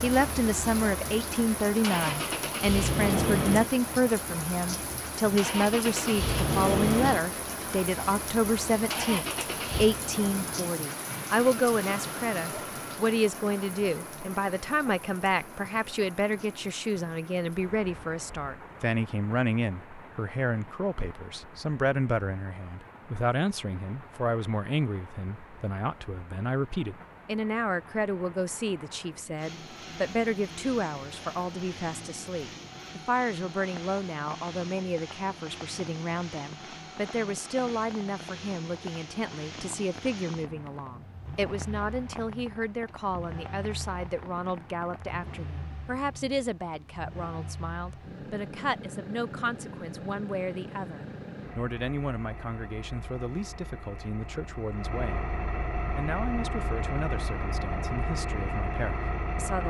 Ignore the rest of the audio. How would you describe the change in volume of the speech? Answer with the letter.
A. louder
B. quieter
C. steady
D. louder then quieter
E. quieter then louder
B.